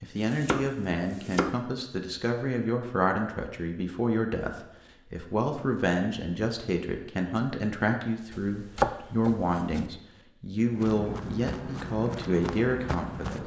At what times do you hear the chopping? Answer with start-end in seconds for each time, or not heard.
0.1-1.6, 8.3-9.9.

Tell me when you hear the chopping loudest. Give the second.
9 s.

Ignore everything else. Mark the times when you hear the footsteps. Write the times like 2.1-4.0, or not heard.
10.7-13.4.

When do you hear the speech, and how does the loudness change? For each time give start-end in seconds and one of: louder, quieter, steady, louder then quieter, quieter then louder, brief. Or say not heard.
0.0-13.4 steady.